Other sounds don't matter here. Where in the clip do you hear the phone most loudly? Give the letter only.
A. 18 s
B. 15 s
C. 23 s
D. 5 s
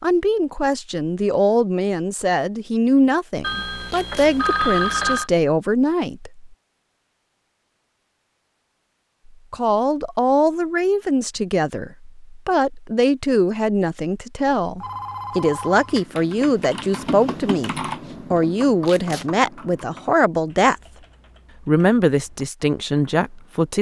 D.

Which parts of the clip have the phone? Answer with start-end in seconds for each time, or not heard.
3.4-5.3, 14.8-16.0.